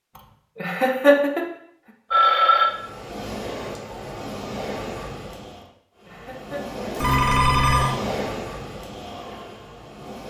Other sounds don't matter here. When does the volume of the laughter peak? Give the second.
1 s.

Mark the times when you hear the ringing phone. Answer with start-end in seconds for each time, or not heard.
2.1-2.7, 7.0-8.0.